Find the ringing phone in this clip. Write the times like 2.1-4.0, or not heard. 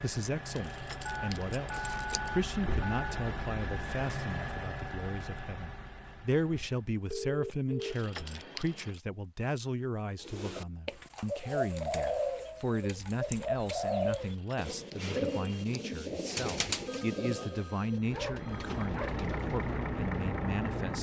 1.1-3.2, 7.1-8.0, 16.9-18.9.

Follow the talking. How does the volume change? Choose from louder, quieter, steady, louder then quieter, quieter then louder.
steady.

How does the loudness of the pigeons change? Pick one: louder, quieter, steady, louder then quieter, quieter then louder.
quieter.